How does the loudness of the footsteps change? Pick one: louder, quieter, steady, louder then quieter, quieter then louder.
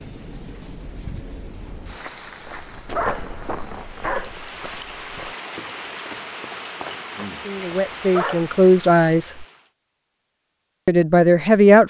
quieter.